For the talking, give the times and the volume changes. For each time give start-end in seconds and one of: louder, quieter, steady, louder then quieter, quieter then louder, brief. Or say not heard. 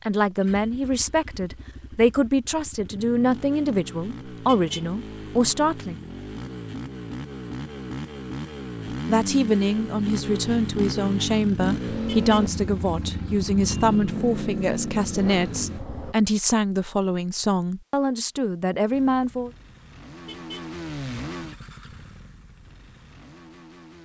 0.0-6.0 steady
8.8-19.5 steady.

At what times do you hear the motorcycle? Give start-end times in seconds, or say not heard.
0.2-16.1, 18.9-24.0.